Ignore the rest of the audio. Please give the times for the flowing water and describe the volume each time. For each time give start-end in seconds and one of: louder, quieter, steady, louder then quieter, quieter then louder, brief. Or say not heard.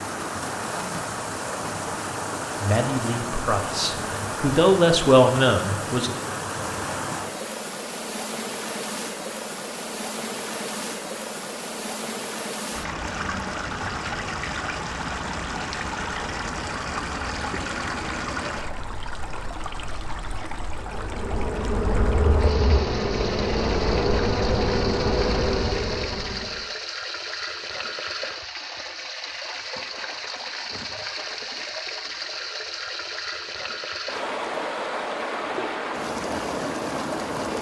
0.0-37.5 steady.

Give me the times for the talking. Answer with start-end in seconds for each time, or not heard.
2.6-6.2.